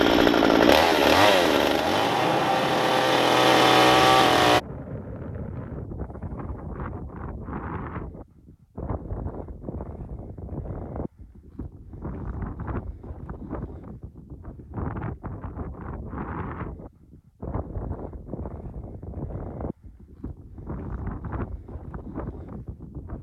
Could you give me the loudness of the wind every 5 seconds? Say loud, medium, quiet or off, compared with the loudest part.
loud, medium, medium, medium, medium.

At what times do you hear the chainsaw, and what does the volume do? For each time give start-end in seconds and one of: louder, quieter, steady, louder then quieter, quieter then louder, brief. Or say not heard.
0.0-4.6 quieter then louder.